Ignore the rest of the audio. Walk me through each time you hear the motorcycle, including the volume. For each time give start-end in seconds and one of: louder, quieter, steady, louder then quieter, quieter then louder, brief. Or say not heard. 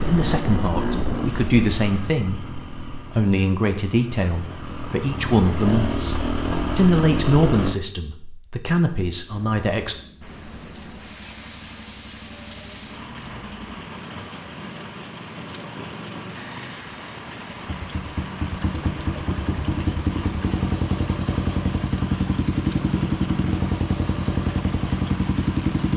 0.0-7.8 quieter then louder
9.2-25.9 louder.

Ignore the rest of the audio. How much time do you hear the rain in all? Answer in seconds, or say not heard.
16 s.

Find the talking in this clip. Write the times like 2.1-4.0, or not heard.
0.0-9.9.